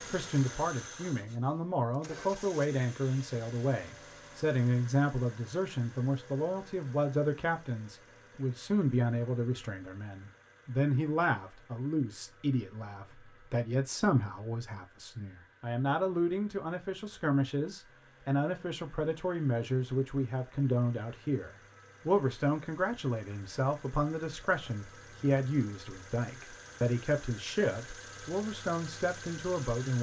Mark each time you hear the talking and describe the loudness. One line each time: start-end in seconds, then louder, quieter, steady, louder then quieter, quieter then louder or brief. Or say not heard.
0.1-29.9 steady.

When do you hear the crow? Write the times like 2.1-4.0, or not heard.
not heard.